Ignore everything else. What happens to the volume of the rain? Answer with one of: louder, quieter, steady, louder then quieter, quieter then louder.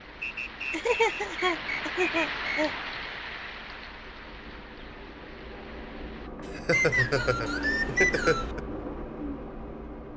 louder then quieter.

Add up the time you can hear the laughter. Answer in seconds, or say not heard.
4 s.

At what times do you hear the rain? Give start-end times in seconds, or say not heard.
0.0-6.3.